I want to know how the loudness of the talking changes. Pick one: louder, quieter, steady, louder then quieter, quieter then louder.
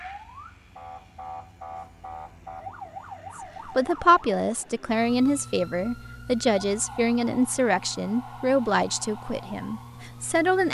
quieter.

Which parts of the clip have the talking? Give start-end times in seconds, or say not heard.
3.7-10.6.